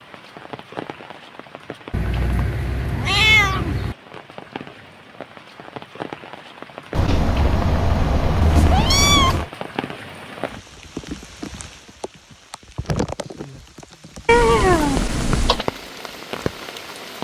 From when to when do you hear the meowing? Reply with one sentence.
The meowing can be heard from 1.9 to 4.0 s, from 6.9 to 9.4 s and from 14.2 to 15.7 s.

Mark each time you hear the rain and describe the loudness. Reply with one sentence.
You can hear the rain from 0.0 to 17.1 s, getting louder.